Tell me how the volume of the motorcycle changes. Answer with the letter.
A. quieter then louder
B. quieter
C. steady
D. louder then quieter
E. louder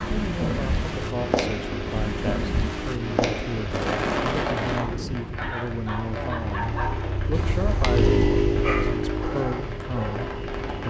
E.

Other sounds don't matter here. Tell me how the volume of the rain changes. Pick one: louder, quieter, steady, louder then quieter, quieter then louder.
quieter.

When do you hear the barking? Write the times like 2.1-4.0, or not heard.
5.3-10.3.